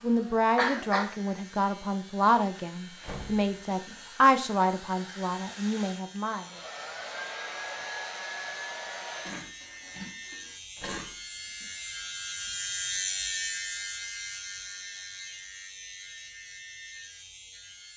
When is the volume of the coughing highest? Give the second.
1 s.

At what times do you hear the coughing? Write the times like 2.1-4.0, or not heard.
0.6-1.1, 9.2-11.1.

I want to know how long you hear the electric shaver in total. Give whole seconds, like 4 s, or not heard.
18 s.